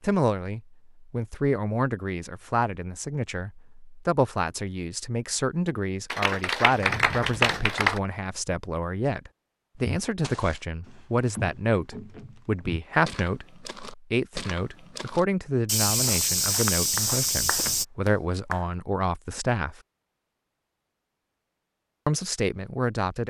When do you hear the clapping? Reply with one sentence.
The clapping can be heard from 6.1 to 8.0 s and from 16.9 to 18.6 s.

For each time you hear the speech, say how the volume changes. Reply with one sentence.
You can hear the speech from 0.0 to 19.8 s, at a steady volume; and briefly from 22.1 to 23.2 s.